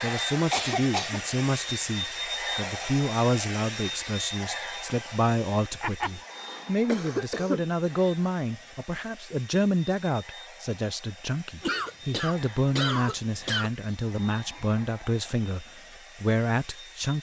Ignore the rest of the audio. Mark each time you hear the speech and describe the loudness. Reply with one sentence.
The speech can be heard from 0.0 to 17.1 s, at a steady volume.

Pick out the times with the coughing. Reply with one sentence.
You can hear the coughing from 0.5 to 1.2 s, from 5.8 to 7.7 s and from 11.6 to 13.7 s.